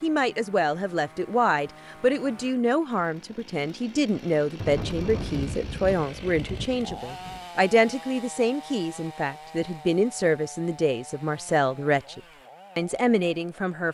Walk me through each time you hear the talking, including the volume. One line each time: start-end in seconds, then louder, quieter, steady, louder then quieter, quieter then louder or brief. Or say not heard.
0.0-13.8 steady.